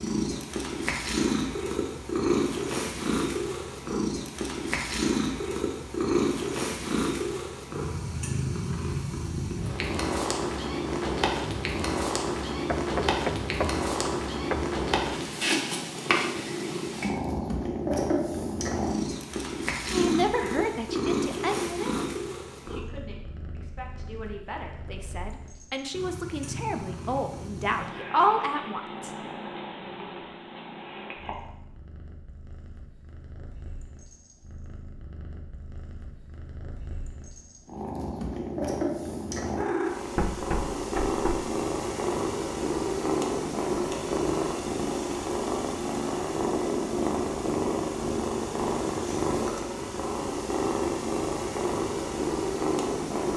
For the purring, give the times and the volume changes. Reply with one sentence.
You can hear the purring from 0.0 to 53.3 s, getting quieter then louder.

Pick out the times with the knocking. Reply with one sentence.
You can hear the knocking from 12.7 to 14.8 s and from 40.1 to 41.5 s.